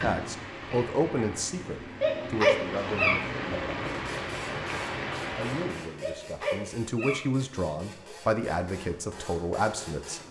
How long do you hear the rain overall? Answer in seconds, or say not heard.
6 s.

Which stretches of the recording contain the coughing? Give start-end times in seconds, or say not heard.
not heard.